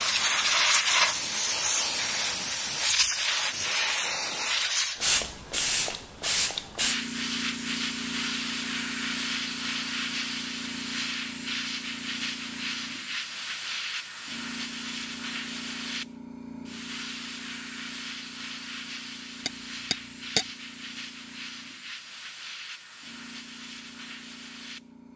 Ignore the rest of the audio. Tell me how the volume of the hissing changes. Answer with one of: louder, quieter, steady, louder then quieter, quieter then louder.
quieter.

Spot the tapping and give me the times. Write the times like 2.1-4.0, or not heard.
19.4-20.4.